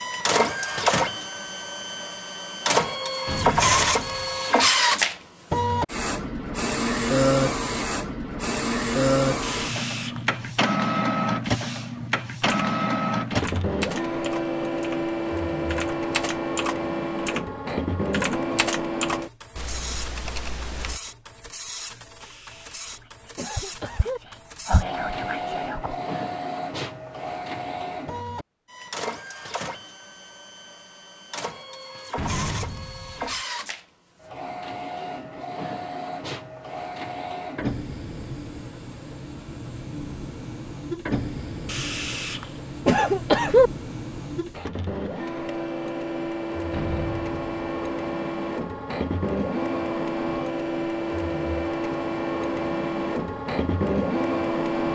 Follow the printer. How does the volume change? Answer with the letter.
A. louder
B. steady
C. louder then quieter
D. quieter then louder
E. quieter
D.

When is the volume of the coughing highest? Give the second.
43 s.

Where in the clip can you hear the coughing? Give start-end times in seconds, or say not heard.
9.4-10.4, 22.2-24.2, 41.6-43.7.